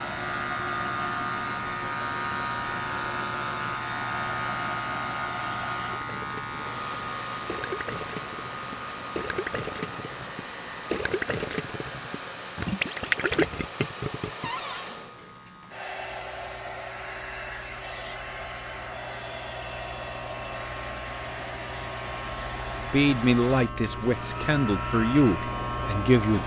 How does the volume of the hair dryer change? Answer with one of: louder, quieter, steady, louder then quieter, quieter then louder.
steady.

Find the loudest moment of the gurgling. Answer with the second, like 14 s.
13 s.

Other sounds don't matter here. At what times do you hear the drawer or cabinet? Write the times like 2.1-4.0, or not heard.
14.4-14.8.